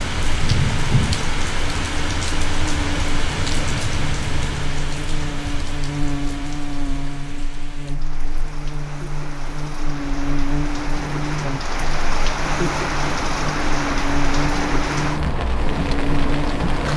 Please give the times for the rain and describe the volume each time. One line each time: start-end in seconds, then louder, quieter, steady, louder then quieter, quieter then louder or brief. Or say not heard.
0.0-16.9 quieter then louder.